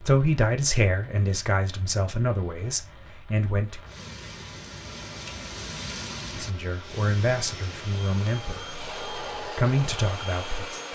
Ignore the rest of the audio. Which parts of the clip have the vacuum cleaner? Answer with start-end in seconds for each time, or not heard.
4.8-10.9.